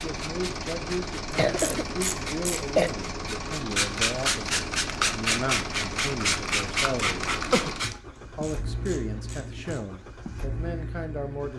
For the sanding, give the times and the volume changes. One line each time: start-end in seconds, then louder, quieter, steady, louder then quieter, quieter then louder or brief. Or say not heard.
0.0-8.0 louder.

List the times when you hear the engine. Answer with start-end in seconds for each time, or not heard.
0.0-11.5.